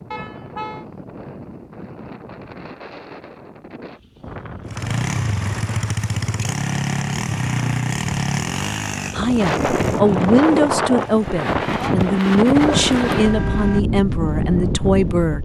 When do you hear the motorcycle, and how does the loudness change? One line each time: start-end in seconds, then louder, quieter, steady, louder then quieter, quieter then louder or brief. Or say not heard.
4.7-11.3 quieter.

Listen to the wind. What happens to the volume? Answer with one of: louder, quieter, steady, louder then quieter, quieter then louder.
louder.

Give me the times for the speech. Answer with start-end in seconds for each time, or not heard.
9.2-15.3.